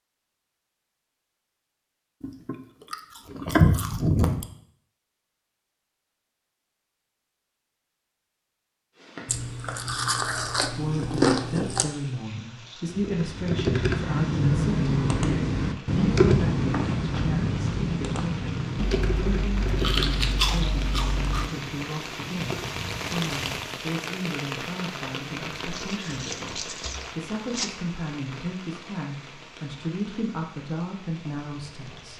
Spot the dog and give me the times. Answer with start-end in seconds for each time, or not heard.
not heard.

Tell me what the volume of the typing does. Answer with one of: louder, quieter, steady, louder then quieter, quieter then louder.
quieter.